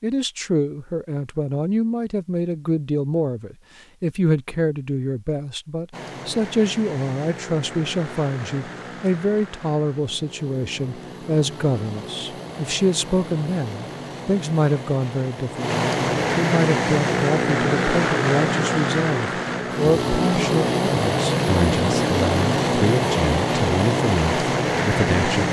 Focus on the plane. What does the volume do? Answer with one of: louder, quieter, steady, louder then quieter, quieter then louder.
louder.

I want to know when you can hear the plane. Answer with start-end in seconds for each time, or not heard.
5.9-25.4.